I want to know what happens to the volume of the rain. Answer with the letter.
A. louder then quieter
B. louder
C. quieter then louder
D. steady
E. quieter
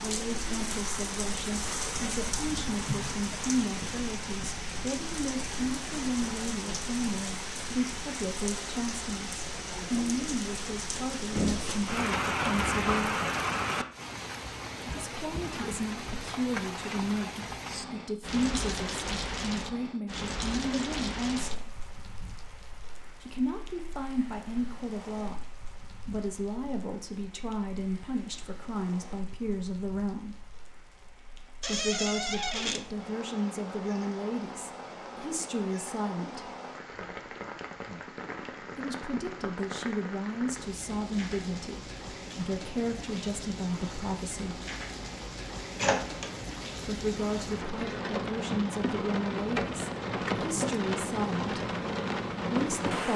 C.